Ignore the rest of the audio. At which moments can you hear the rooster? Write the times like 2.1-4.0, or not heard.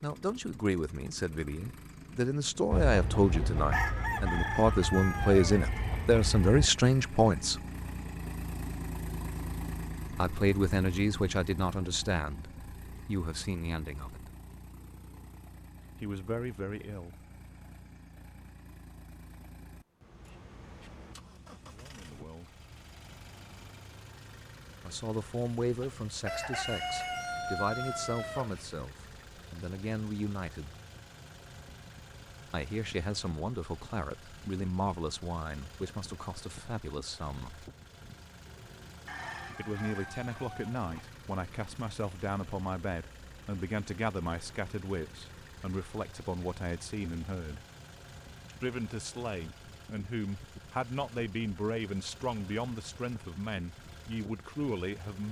2.7-6.7, 26.1-28.6, 39.0-41.0.